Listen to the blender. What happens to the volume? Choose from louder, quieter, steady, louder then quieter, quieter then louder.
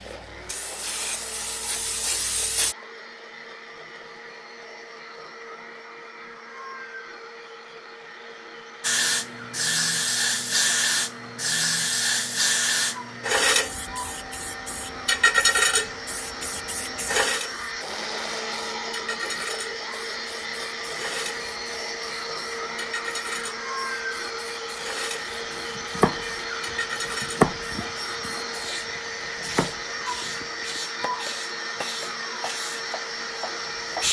louder.